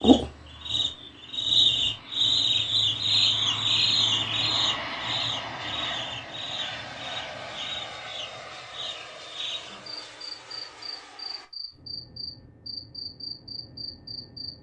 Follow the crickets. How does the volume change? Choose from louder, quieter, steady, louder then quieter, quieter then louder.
quieter.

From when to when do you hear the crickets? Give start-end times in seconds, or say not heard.
0.0-14.5.